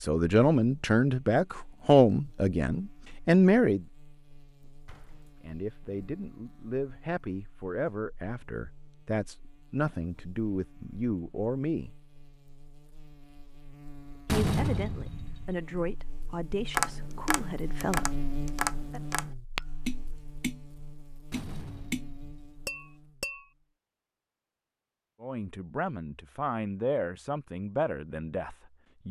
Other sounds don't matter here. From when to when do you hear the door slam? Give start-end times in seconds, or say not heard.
4.8-5.9, 14.2-15.6, 21.3-22.4.